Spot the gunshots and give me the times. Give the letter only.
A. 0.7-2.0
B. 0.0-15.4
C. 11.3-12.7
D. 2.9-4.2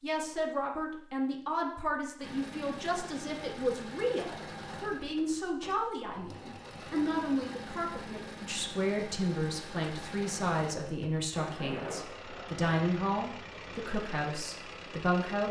C.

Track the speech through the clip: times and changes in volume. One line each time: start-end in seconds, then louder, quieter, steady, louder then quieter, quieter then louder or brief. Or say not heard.
0.0-15.4 steady.